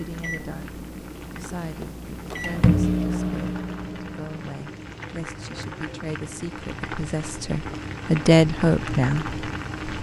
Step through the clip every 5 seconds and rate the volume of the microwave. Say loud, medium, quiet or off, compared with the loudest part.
loud, off.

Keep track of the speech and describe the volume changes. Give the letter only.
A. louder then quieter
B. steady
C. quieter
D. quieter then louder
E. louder
E.